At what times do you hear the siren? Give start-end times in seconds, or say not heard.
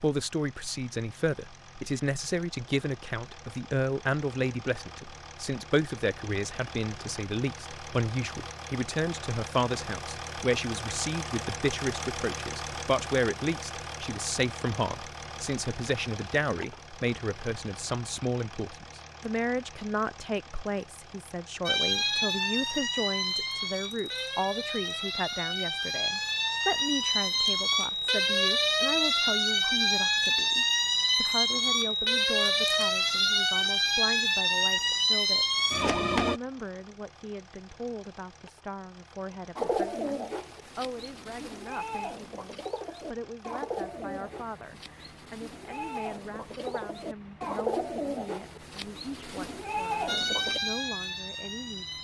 21.6-36.4, 50.0-51.9.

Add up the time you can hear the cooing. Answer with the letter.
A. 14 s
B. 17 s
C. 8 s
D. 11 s
D.